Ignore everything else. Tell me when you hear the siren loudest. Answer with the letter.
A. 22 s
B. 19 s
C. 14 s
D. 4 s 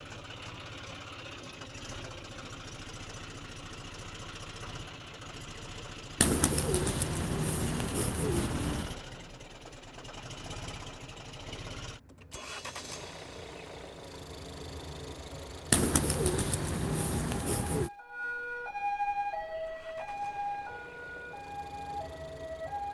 B.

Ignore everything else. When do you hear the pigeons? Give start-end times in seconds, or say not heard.
6.2-8.9, 15.7-17.9.